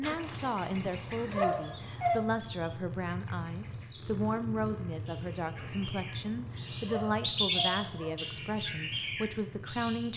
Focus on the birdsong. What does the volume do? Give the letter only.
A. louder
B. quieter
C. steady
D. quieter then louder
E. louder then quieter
E.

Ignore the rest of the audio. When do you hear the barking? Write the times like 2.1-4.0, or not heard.
0.0-2.2, 5.5-8.2.